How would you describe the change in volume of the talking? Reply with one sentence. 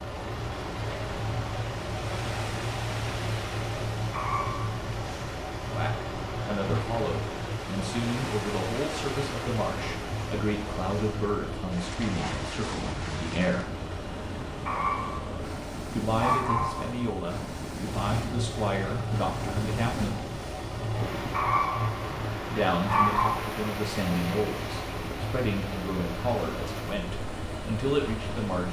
The loudness of the talking stays about the same.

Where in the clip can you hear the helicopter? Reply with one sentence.
You can hear the helicopter from 0.0 to 28.6 s.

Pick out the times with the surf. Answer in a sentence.
You can hear the surf from 0.2 to 28.6 s.